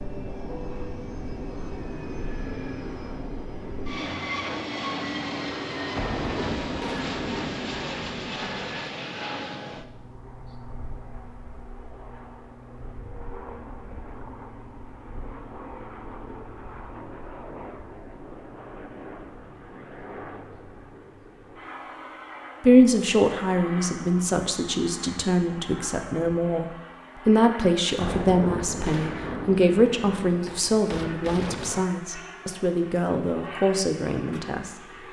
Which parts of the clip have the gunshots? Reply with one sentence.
The gunshots can be heard from 6.0 to 8.7 s and from 28.0 to 31.9 s.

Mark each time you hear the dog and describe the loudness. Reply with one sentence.
You can't hear the dog here.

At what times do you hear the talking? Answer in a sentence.
You can hear the talking from 22.6 to 34.7 s.